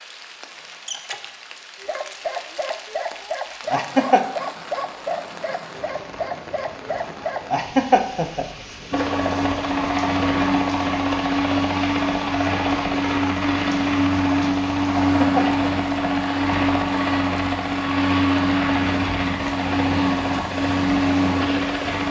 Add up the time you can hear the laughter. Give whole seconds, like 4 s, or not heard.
2 s.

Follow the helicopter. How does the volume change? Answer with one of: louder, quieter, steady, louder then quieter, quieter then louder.
steady.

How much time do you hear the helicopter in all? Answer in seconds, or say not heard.
13 s.